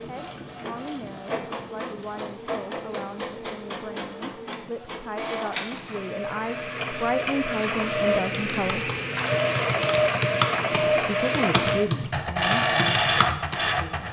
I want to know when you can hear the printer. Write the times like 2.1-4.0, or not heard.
0.0-14.0.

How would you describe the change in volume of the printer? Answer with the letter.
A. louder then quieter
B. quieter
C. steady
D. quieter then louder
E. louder
E.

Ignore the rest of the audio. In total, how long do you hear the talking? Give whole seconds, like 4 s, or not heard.
12 s.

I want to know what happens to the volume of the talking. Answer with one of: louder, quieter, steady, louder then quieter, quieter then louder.
louder.